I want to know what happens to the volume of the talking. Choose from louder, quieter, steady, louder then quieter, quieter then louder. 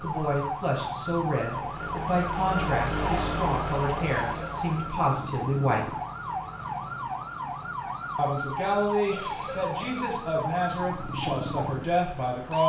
steady.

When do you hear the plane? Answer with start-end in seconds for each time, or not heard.
0.0-12.6.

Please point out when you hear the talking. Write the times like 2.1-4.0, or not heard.
0.0-5.9, 8.2-12.6.